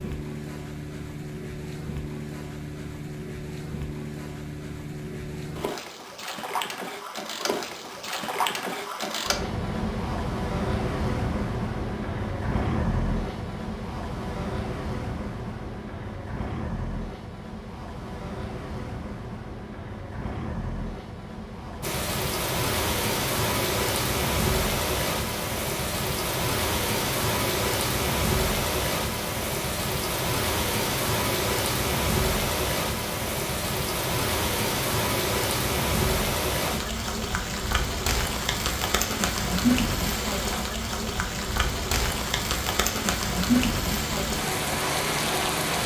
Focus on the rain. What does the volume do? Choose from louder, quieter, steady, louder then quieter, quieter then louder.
steady.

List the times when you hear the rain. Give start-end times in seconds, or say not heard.
21.8-45.8.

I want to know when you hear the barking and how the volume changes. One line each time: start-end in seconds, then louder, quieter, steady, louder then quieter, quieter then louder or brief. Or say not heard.
not heard.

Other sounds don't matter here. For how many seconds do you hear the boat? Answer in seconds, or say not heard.
46 s.